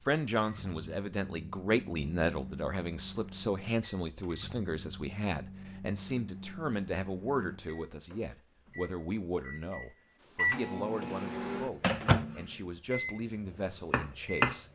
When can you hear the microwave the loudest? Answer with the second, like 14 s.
12 s.